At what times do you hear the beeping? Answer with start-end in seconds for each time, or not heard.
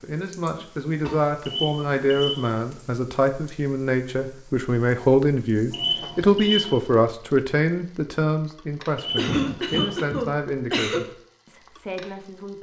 1.4-2.5, 5.7-6.8, 8.9-10.0.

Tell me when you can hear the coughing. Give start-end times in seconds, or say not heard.
0.6-1.2, 9.2-11.0.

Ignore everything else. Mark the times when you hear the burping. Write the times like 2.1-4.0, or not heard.
not heard.